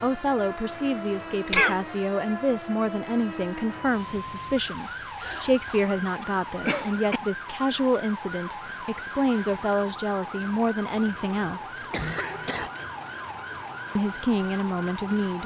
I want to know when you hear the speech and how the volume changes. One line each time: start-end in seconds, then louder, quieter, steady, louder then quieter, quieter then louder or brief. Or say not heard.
0.0-11.8 steady
13.9-15.4 brief.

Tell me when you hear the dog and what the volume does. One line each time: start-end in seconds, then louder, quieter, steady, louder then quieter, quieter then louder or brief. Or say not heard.
not heard.